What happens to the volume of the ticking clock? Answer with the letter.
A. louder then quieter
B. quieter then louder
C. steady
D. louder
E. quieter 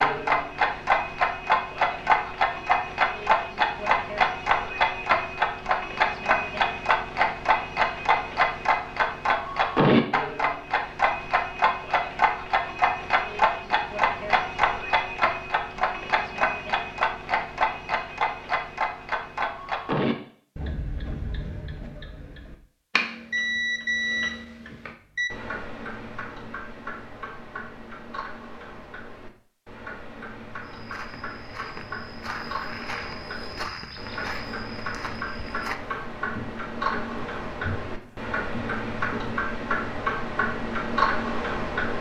B.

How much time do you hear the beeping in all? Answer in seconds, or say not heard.
2 s.